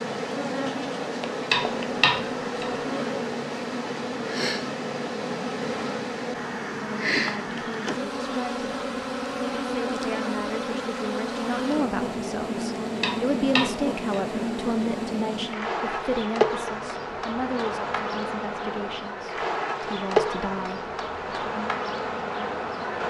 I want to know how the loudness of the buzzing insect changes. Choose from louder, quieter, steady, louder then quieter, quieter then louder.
steady.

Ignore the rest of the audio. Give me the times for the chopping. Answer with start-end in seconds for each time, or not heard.
1.5-2.8, 13.0-14.3.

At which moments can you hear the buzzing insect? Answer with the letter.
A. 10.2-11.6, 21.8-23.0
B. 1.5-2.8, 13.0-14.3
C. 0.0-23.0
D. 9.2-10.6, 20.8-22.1
C.